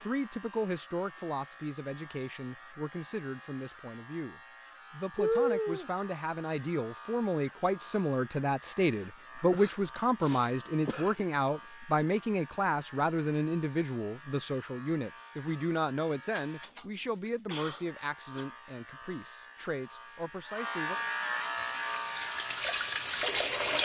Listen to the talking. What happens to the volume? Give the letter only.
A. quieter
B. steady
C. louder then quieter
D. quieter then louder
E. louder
C.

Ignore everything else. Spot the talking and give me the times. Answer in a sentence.
The talking can be heard from 0.0 to 21.0 s.